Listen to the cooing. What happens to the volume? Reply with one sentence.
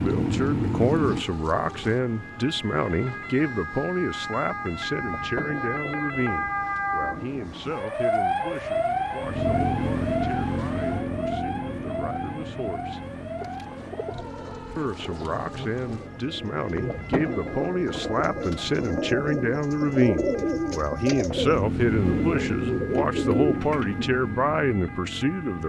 The volume of the cooing goes up.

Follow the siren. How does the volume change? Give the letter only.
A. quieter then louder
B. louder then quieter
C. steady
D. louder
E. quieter
B.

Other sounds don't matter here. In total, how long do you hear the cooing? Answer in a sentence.
The cooing can be heard for 11 seconds in total.